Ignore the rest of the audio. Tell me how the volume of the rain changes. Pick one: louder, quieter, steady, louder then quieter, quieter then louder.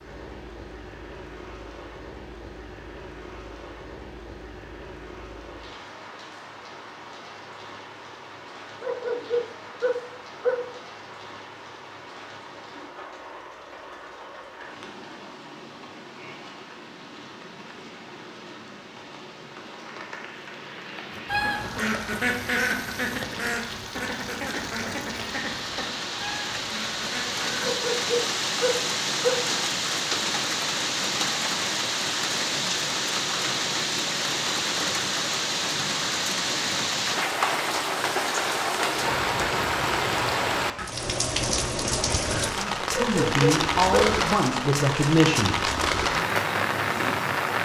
louder.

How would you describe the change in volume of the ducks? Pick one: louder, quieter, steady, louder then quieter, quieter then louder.
quieter.